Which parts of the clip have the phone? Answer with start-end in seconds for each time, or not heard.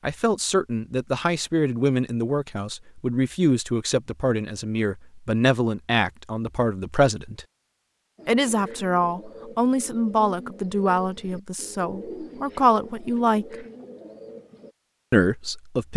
not heard.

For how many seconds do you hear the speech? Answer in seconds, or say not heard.
14 s.